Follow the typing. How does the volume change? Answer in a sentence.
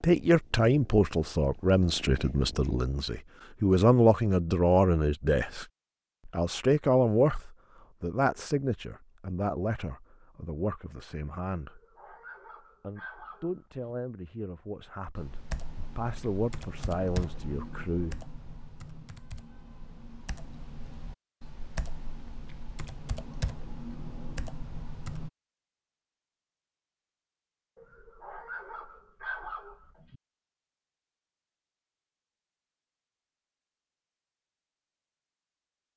The volume of the typing goes down, then up.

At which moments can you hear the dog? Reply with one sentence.
The dog can be heard from 11.6 to 13.8 s and from 27.8 to 30.2 s.